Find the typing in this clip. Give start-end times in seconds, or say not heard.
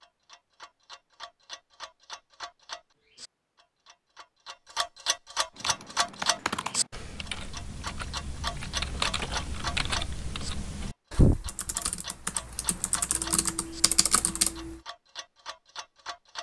5.5-14.8.